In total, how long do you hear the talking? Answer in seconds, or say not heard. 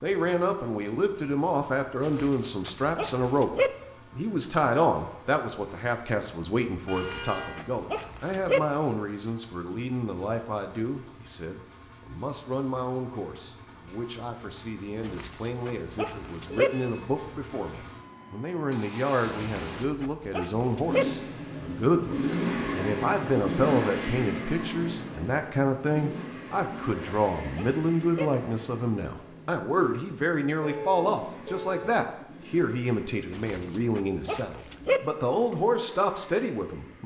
37 s.